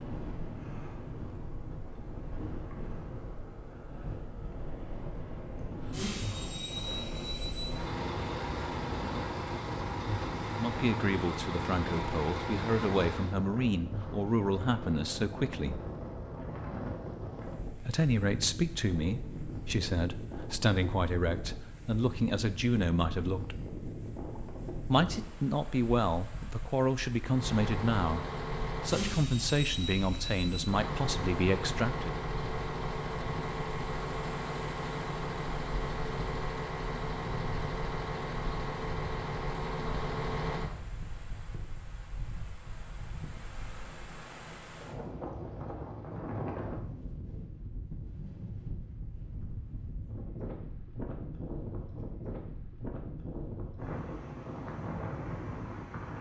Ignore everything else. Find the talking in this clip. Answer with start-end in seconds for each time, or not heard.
10.6-15.8, 17.8-23.6, 24.9-32.1.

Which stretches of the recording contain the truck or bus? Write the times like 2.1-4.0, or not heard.
5.8-13.3, 27.2-40.9.